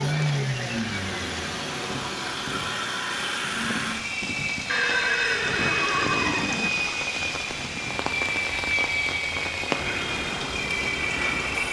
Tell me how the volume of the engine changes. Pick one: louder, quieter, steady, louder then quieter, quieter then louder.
steady.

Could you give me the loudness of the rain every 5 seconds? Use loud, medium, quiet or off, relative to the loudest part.
medium, loud, loud.